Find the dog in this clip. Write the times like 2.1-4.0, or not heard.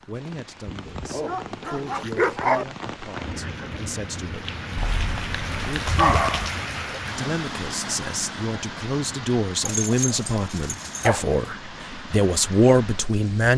0.7-2.6, 4.8-6.5, 9.7-11.3.